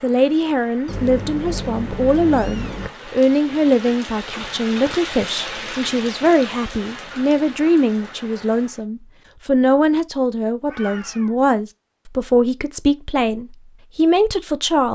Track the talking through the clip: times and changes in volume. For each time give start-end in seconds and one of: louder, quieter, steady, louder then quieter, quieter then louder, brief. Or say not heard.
0.0-14.9 steady.